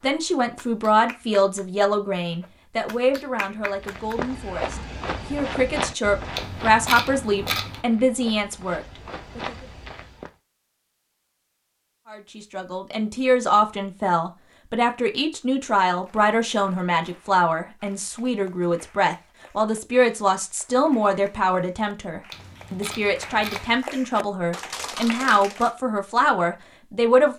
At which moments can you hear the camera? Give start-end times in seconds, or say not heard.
6.3-7.8, 22.3-23.8.